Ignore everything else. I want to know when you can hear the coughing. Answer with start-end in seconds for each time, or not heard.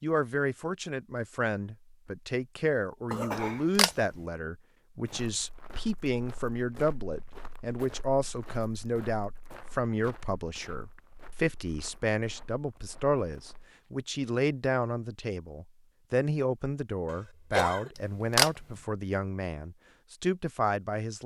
3.1-4.0, 17.1-17.9.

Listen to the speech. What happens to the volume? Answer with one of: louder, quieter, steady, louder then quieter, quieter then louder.
steady.